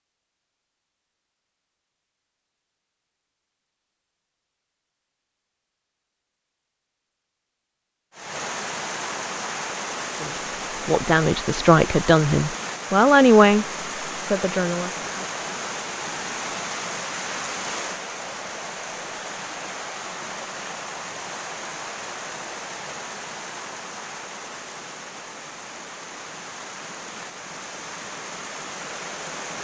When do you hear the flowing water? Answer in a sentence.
The flowing water can be heard from 8.1 to 29.5 s.